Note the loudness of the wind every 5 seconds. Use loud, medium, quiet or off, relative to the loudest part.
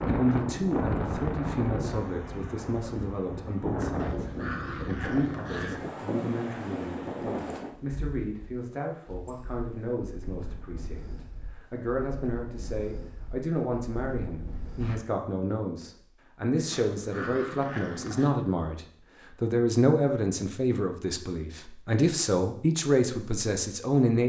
loud, loud, quiet, off, off.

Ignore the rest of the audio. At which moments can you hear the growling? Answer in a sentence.
The growling can be heard from 4.0 to 5.8 s and from 16.7 to 18.4 s.